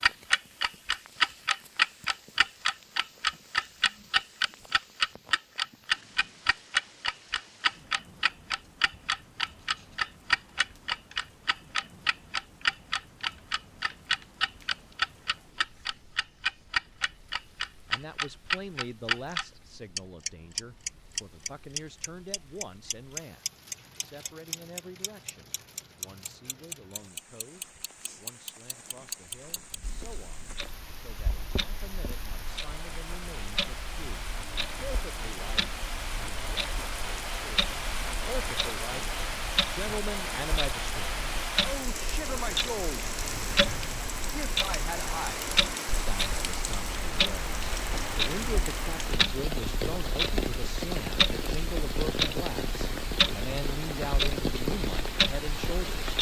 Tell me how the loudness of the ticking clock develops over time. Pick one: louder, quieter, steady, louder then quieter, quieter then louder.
quieter then louder.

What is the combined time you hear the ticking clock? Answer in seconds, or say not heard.
56 s.